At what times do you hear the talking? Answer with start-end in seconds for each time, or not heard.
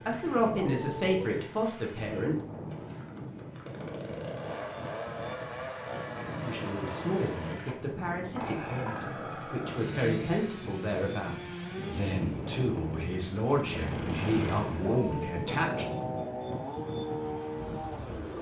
0.1-2.4, 6.4-15.8.